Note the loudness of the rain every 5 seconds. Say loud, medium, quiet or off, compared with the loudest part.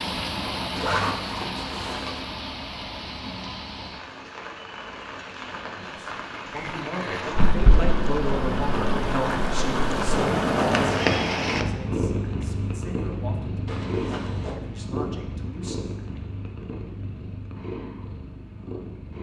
medium, medium, loud, off.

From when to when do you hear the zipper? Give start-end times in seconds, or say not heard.
0.8-2.2, 6.5-7.5, 13.7-14.6.